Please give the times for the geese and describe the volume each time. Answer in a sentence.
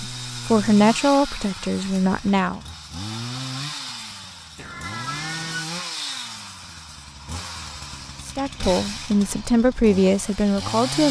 The geese can't be heard in this clip.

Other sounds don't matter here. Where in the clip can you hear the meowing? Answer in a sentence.
You can hear the meowing from 4.5 to 5.7 s.